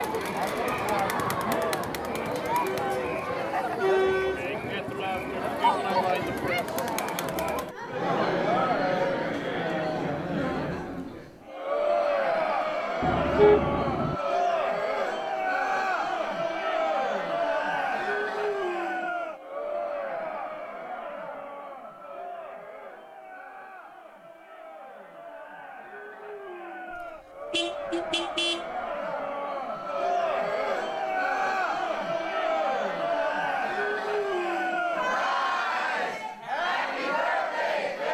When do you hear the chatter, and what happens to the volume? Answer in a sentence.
You can hear the chatter from 0.0 to 38.0 s, getting quieter then louder.